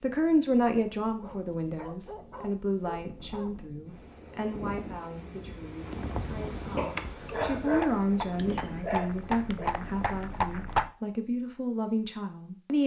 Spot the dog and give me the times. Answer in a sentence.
You can hear the dog from 1.1 to 3.7 s and from 6.8 to 9.7 s.